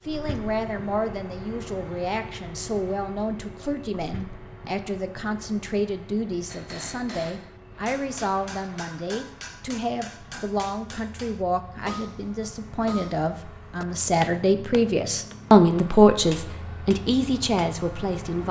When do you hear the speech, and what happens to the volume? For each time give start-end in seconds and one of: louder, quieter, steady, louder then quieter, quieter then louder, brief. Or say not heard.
0.1-18.4 louder.